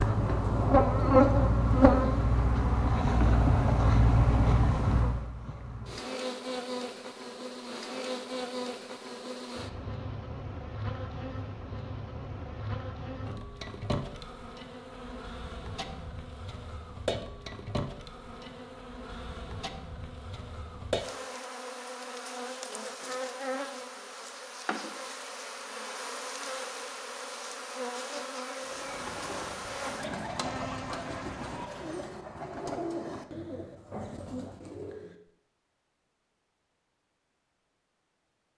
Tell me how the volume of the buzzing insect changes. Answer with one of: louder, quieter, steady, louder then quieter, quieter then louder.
quieter.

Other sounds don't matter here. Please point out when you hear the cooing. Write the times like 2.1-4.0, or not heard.
0.0-2.1, 28.6-35.1.